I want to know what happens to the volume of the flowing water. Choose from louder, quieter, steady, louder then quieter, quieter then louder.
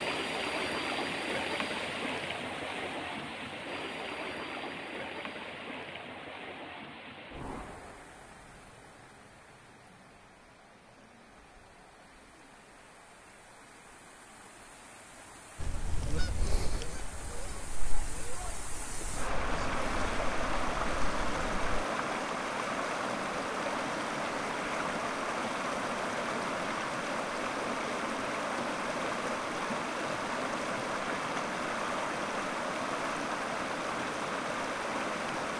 quieter then louder.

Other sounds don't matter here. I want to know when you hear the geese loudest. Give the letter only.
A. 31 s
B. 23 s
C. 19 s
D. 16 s
D.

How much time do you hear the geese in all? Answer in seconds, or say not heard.
6 s.